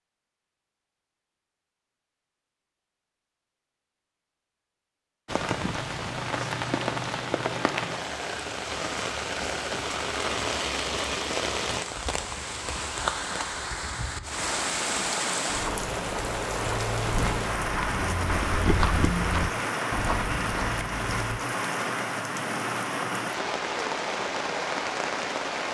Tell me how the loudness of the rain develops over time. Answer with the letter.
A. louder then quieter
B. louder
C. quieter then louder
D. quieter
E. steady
E.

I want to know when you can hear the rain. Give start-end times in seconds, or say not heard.
5.2-25.6.